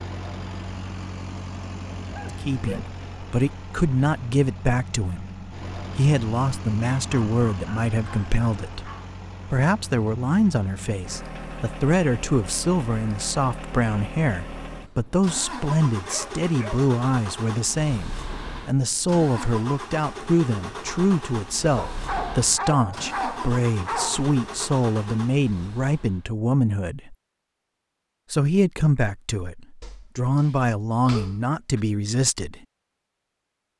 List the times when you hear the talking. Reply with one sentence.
The talking can be heard from 2.4 to 8.9 s, from 9.5 to 27.1 s and from 28.3 to 32.6 s.